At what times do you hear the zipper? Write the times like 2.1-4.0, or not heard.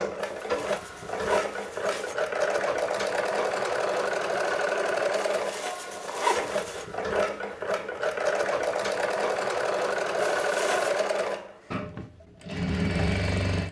0.1-2.1, 5.3-6.8, 10.2-11.0.